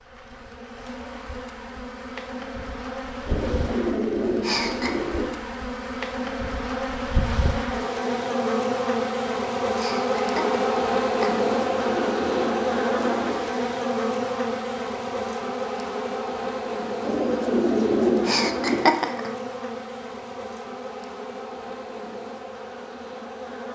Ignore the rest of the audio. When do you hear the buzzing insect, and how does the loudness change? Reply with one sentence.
You can hear the buzzing insect from 0.0 to 23.7 s, getting louder then quieter.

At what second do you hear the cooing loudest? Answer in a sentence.
The volume of the cooing peaks at 18 seconds.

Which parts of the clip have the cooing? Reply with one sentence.
The cooing can be heard from 3.2 to 5.2 s, from 11.3 to 13.3 s and from 17.0 to 18.9 s.